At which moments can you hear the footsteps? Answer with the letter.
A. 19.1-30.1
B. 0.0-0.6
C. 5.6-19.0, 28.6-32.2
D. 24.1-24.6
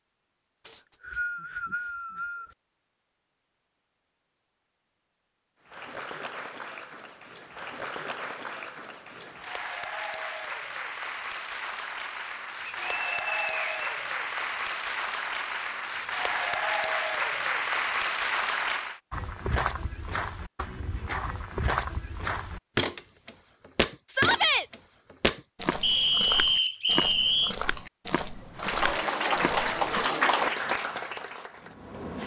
A.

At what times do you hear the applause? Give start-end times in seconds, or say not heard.
5.6-19.0, 28.6-32.2.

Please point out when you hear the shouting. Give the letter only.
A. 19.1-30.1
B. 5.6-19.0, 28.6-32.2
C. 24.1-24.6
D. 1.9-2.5
C.